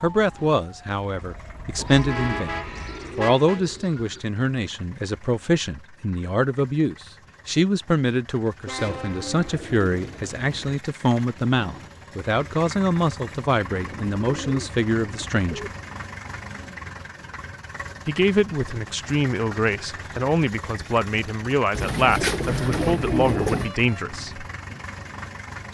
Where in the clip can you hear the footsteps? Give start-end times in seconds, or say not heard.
not heard.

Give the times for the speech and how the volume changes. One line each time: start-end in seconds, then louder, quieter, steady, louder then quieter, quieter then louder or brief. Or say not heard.
0.0-15.7 steady
18.1-24.4 steady.